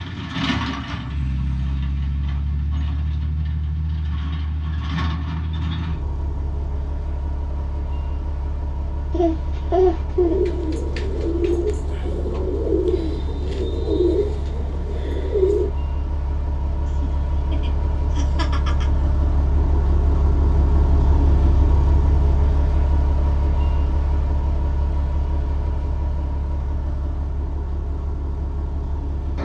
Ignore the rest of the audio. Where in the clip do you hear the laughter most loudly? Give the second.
10 s.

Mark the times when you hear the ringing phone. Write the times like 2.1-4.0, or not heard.
not heard.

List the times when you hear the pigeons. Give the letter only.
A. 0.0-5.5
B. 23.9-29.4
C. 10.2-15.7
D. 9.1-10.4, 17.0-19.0
C.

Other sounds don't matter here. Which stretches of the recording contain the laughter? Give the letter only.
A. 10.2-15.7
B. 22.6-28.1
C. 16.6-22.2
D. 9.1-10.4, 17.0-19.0
D.